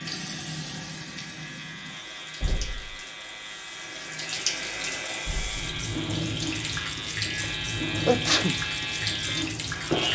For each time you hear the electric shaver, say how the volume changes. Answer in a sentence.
The electric shaver can be heard from 0.0 to 10.0 s, getting louder.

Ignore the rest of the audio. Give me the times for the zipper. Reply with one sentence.
The zipper can't be heard in this clip.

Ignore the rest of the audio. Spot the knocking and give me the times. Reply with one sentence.
You can hear the knocking from 2.4 to 3.0 s and from 5.2 to 5.7 s.